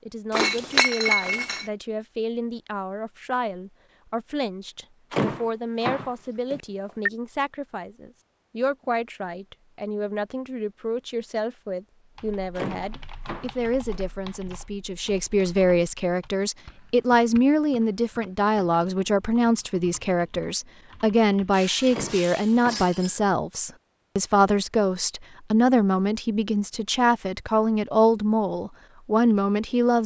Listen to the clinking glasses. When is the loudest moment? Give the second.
1 s.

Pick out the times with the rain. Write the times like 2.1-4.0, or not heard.
not heard.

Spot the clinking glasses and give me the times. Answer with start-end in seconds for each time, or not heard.
0.3-1.6, 21.5-23.2.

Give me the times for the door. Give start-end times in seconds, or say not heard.
5.1-7.1, 12.6-14.1, 21.9-22.9.